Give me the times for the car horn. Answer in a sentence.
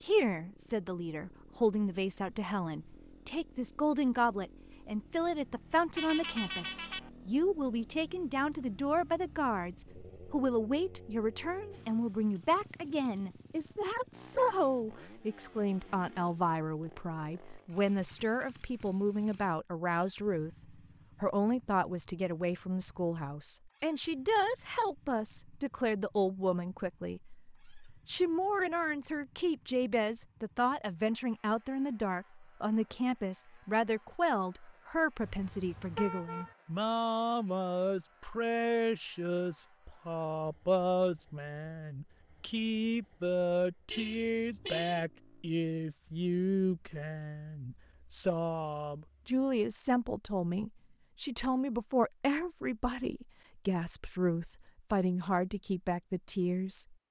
The car horn can be heard from 6.0 to 7.1 s, from 35.2 to 36.5 s and from 43.9 to 45.0 s.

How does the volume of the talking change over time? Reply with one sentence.
The loudness of the talking stays about the same.